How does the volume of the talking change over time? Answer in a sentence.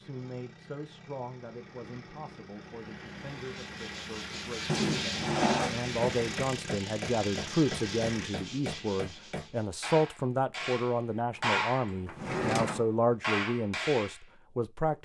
The volume of the talking goes up.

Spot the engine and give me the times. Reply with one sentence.
The engine can be heard from 0.0 to 8.3 s.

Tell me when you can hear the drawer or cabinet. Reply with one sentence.
The drawer or cabinet can be heard from 4.7 to 5.8 s and from 12.1 to 12.8 s.